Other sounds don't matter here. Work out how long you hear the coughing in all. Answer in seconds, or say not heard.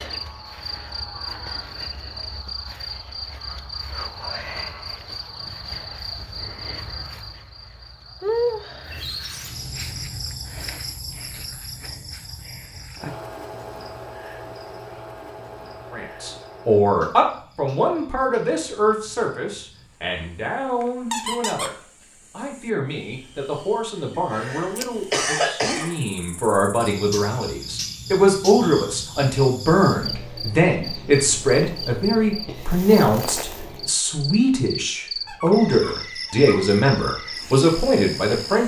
2 s.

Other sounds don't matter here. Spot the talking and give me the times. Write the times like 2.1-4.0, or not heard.
15.9-38.6.